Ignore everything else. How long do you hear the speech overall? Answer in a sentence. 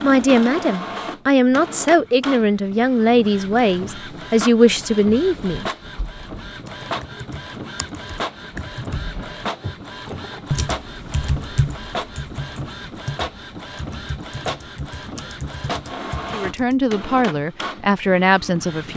The speech can be heard for 8 seconds in total.